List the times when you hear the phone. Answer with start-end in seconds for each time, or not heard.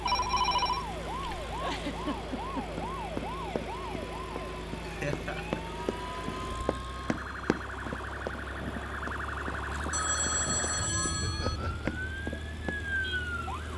0.1-1.6, 5.8-7.7, 9.9-11.6.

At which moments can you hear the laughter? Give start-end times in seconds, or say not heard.
1.6-2.8, 4.8-6.2, 11.2-11.9.